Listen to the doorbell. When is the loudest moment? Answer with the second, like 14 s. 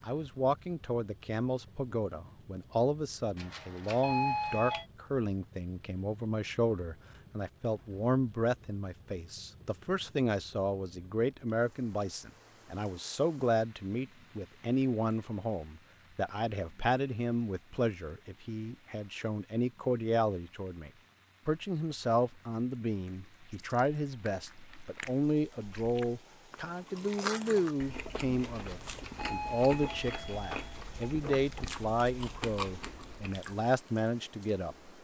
4 s.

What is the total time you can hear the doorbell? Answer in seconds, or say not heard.
4 s.